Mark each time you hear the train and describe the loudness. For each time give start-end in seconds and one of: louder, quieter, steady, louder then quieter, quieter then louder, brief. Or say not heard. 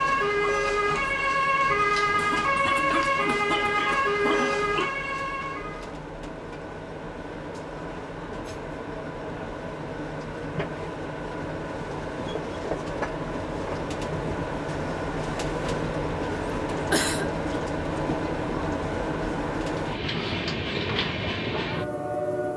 0.0-22.5 louder.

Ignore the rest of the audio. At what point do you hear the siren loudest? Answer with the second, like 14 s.
2 s.